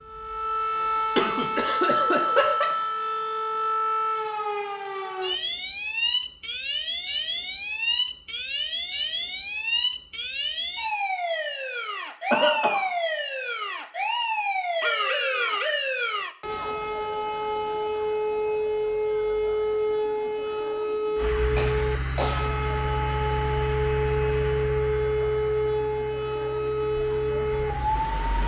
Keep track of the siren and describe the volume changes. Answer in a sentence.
The loudness of the siren stays about the same.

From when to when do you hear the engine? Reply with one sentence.
You can hear the engine from 21.1 to 28.4 s.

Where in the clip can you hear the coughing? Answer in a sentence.
You can hear the coughing from 1.1 to 2.6 s, from 12.3 to 12.9 s and from 21.6 to 22.5 s.